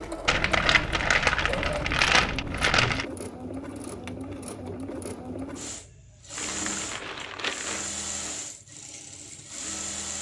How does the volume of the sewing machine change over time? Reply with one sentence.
The volume of the sewing machine stays about the same.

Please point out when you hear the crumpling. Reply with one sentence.
The crumpling can be heard from 0.2 to 3.0 s and from 6.3 to 7.9 s.